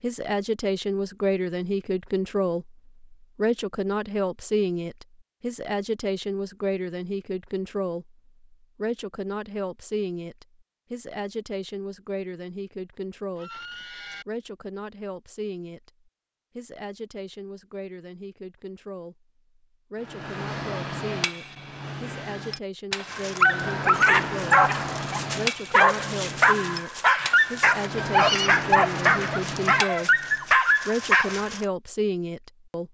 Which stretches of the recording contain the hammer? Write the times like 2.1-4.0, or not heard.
20.0-30.4.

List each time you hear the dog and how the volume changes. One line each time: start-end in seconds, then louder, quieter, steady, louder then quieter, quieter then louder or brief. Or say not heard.
23.1-31.6 steady.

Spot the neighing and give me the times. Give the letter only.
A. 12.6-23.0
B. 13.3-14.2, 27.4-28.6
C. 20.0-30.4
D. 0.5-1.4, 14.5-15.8
B.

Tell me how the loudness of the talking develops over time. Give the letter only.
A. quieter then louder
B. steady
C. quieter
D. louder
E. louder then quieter
A.